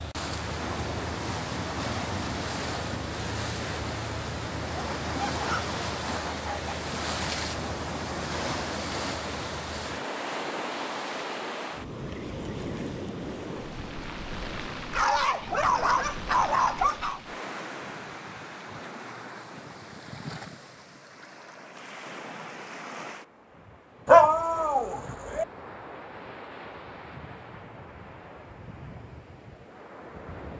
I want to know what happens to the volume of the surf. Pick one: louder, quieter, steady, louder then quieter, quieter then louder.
quieter.